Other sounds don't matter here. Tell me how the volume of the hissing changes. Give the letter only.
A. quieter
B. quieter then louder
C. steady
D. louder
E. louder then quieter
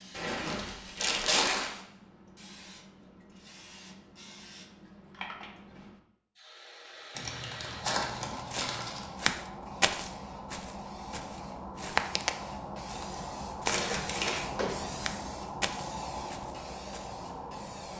D.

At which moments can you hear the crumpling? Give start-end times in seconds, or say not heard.
0.1-1.7, 7.2-9.1, 13.7-14.4.